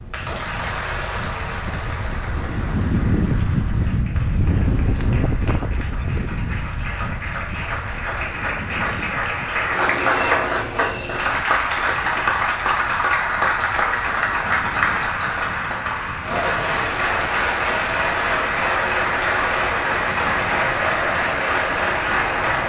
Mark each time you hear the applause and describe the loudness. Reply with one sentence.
You can hear the applause from 0.1 to 22.6 s, getting louder.